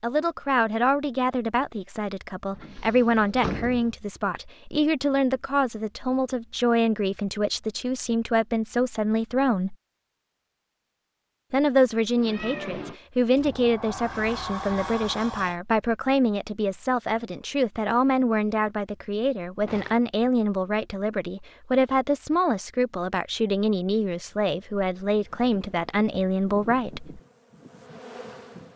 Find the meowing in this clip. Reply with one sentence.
The meowing can be heard from 12.2 to 13.0 s.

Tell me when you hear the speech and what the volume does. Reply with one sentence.
You can hear the speech from 0.0 to 9.8 s, at a steady volume; and from 11.5 to 27.2 s, at a steady volume.